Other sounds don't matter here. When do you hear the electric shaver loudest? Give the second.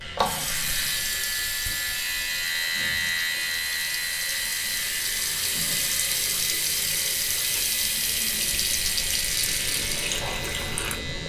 3 s.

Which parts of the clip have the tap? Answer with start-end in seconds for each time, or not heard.
0.0-11.2.